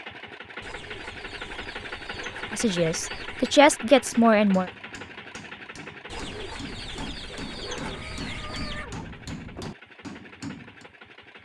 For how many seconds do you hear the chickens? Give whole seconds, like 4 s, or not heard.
6 s.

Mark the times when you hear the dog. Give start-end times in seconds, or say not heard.
not heard.